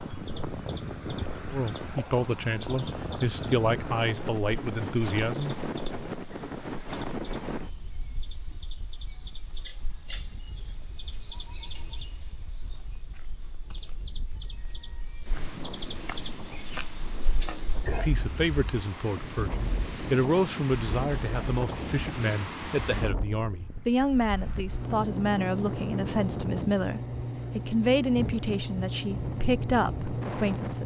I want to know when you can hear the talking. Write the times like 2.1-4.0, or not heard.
1.5-5.5, 18.0-30.8.